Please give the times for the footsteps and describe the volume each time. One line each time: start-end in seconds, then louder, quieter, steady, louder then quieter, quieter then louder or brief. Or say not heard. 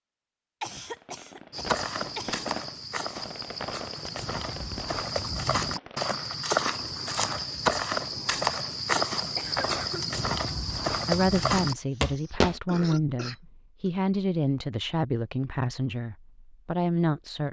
1.5-12.6 louder.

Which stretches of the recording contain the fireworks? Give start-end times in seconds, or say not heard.
0.8-6.2.